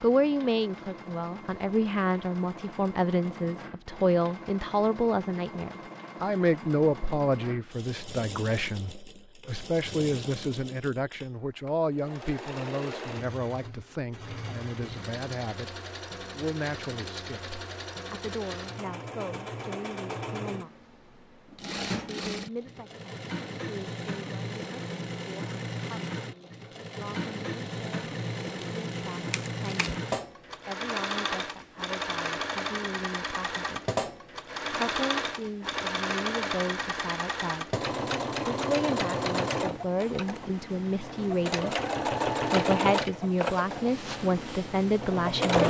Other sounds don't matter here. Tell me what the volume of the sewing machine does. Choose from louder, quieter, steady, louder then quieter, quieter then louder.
louder.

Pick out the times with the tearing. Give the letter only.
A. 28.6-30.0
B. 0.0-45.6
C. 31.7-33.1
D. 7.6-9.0
A.